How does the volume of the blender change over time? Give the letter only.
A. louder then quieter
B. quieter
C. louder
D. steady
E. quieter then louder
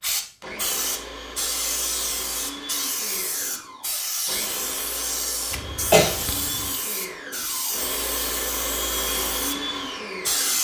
C.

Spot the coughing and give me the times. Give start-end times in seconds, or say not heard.
5.5-6.8.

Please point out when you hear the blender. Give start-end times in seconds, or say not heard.
0.4-10.5.